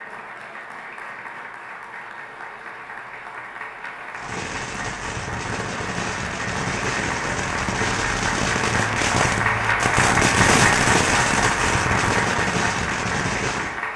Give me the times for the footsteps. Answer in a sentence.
The footsteps can't be heard in this clip.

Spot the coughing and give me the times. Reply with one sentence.
The coughing can't be heard in this clip.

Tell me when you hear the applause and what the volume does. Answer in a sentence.
You can hear the applause from 0.0 to 13.9 s, getting louder.